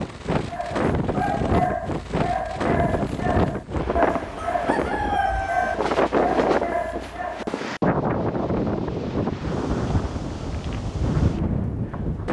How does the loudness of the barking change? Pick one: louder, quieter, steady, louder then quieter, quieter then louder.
steady.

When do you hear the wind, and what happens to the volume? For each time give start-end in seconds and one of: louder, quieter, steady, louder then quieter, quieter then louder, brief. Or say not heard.
0.0-12.2 steady.